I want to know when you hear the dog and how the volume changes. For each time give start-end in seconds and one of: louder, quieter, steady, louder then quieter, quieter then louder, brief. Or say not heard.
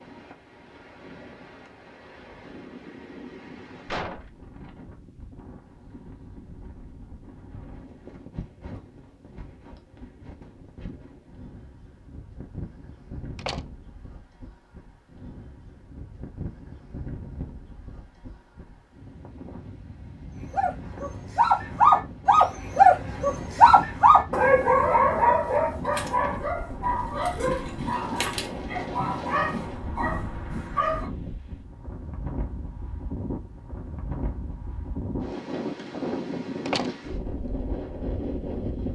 20.5-31.1 quieter.